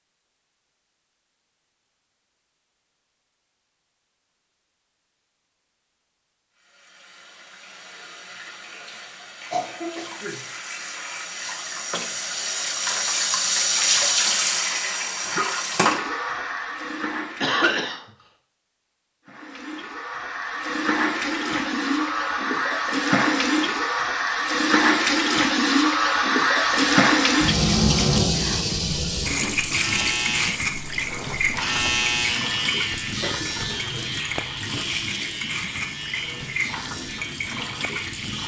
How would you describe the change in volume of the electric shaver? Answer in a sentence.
The volume of the electric shaver goes up, then down.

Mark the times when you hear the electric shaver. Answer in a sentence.
The electric shaver can be heard from 26.6 to 38.4 s.